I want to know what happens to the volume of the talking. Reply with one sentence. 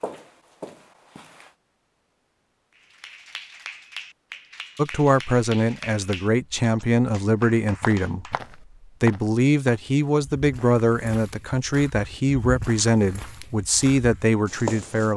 The volume of the talking stays about the same.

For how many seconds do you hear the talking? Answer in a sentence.
The talking can be heard for 10 seconds in total.